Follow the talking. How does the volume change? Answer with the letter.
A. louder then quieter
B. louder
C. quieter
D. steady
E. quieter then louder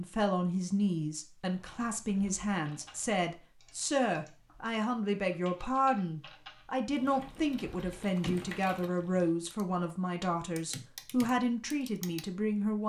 D.